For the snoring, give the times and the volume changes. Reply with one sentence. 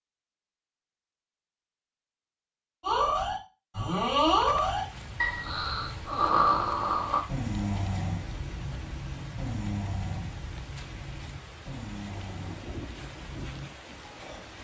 The snoring can be heard from 2.8 to 14.4 s, getting quieter.